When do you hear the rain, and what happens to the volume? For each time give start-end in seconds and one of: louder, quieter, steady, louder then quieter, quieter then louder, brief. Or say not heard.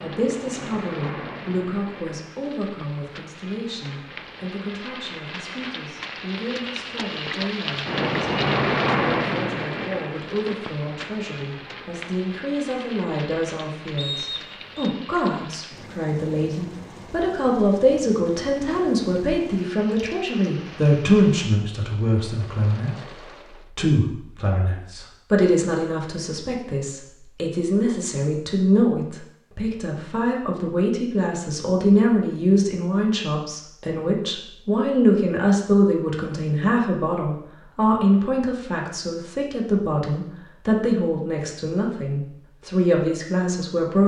0.0-23.7 louder then quieter.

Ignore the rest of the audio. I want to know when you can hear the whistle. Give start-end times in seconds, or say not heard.
13.9-14.9.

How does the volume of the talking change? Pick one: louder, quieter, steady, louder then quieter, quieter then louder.
louder.